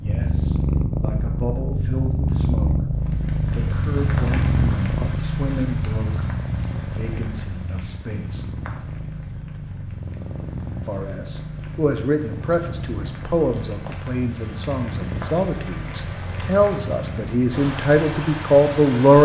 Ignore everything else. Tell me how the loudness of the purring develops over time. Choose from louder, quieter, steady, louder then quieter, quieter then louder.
quieter.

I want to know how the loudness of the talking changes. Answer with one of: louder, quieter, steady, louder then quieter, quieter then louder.
louder.